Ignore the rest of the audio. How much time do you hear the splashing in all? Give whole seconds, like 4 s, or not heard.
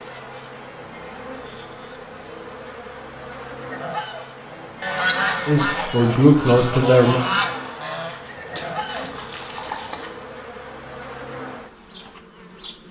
2 s.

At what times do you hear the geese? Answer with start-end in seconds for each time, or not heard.
3.7-9.1.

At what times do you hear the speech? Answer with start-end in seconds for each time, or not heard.
5.5-7.2.